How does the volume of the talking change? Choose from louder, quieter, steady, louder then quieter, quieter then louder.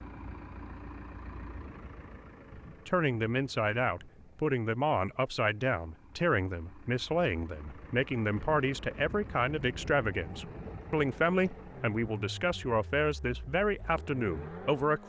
steady.